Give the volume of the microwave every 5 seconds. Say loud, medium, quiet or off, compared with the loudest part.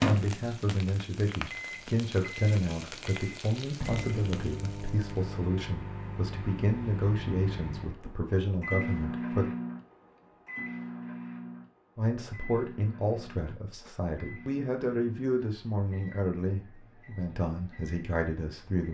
loud, loud, medium, quiet.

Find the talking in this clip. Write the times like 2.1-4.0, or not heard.
0.0-9.5, 11.9-18.9.